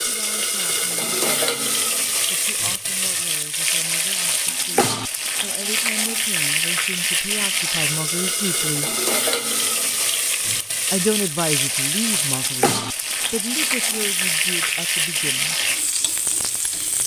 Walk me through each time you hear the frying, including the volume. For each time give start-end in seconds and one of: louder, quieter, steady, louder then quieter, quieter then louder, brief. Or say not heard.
0.0-17.0 steady.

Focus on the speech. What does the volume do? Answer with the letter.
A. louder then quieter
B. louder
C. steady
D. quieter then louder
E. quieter
A.